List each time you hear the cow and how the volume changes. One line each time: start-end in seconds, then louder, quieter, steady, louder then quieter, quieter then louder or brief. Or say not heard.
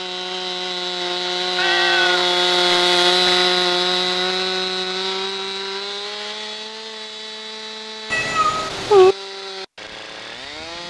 not heard.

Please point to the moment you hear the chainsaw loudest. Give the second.
3 s.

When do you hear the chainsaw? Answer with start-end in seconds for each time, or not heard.
0.0-10.8.